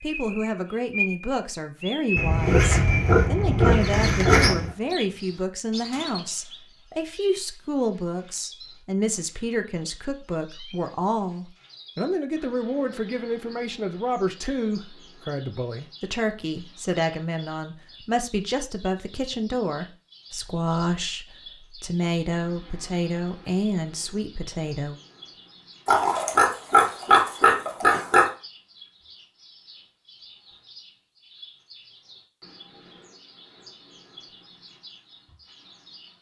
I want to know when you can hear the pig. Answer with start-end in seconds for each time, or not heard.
2.1-4.7, 25.9-28.3.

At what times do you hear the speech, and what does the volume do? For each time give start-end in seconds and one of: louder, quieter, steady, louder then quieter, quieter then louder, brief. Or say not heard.
0.0-24.9 steady.